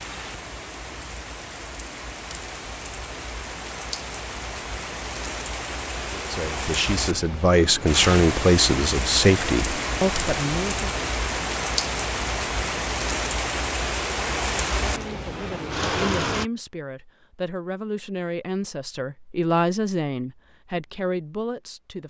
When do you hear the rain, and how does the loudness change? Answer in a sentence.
You can hear the rain from 0.0 to 16.5 s, getting louder.